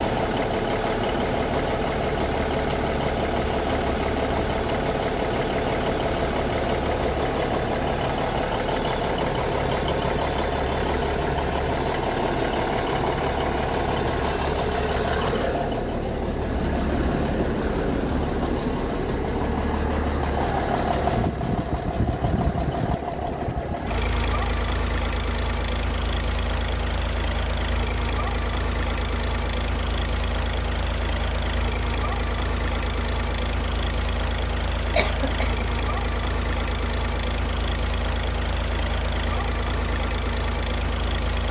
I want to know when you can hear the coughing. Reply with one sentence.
The coughing can be heard from 35.0 to 35.6 s.